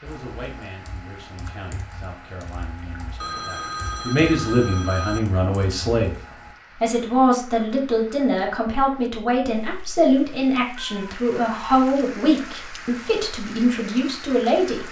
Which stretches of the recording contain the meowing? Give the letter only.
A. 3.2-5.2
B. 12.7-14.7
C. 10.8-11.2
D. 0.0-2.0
C.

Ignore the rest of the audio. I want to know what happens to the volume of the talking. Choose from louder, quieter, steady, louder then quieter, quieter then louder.
louder.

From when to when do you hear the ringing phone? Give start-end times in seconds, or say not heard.
3.2-5.2.